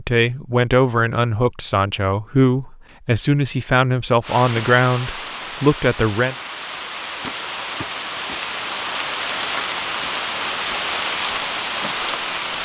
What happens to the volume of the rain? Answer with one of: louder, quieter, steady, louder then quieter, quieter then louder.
louder.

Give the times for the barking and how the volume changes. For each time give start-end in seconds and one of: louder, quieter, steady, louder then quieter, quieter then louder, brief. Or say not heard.
not heard.